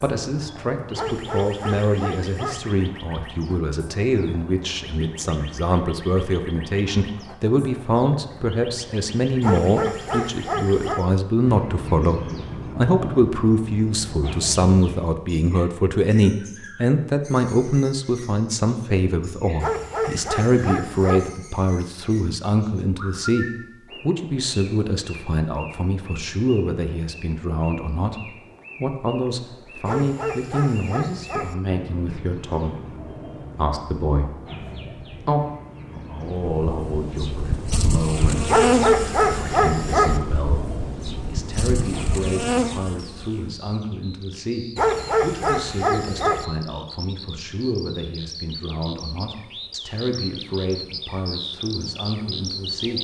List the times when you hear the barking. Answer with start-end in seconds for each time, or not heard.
0.9-2.6, 9.4-11.1, 19.6-21.3, 29.9-31.6, 38.5-40.2, 44.8-46.5.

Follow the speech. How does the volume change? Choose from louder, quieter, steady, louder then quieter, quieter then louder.
quieter.